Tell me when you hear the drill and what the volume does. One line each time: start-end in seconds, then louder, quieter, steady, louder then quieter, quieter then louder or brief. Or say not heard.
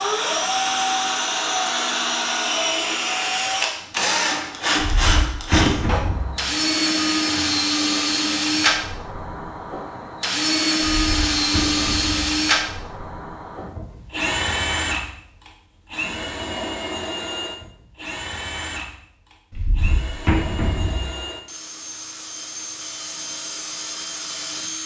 0.0-24.8 quieter.